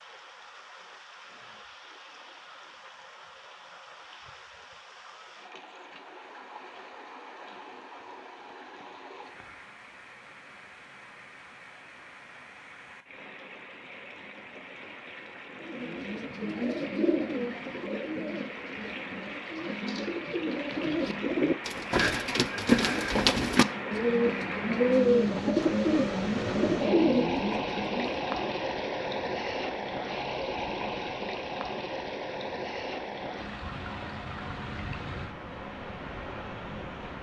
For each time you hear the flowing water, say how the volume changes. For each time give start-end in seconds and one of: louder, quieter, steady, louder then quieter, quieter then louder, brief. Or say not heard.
0.0-37.1 louder.